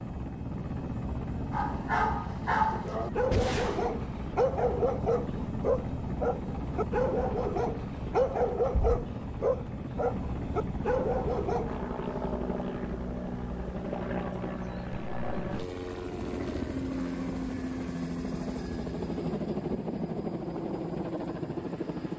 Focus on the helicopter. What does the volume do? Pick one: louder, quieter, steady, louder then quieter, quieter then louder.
steady.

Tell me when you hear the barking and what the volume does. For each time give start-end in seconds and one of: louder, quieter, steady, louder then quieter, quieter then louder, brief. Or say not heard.
1.5-11.8 steady.